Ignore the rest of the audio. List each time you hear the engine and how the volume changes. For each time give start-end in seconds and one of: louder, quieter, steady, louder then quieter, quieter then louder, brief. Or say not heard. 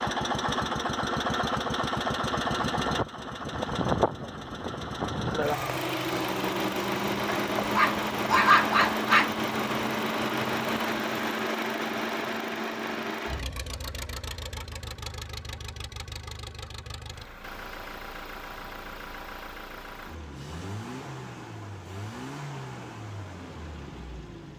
0.0-24.5 quieter.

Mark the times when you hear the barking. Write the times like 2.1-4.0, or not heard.
7.3-9.3.